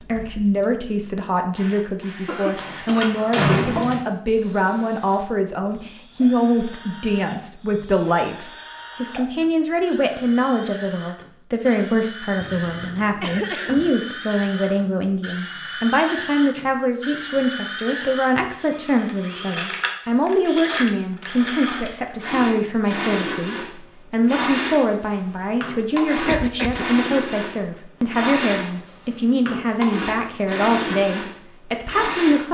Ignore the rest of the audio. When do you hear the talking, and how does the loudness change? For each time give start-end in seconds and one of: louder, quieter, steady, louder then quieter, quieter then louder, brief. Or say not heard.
0.0-32.4 steady.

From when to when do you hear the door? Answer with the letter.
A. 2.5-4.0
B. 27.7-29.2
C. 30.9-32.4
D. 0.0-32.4
A.